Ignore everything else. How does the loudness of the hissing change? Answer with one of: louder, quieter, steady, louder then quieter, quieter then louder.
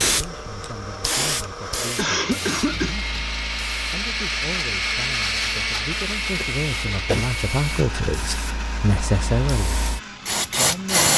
quieter then louder.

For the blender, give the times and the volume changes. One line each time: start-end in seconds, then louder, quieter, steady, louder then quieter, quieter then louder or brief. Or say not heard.
0.0-11.1 louder then quieter.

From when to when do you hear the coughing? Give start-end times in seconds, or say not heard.
1.9-3.0, 6.4-7.3.